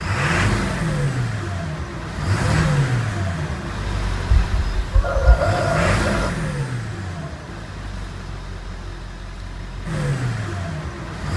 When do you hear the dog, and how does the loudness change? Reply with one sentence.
You can't hear the dog here.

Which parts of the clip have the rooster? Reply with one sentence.
You can hear the rooster from 4.3 to 6.3 s.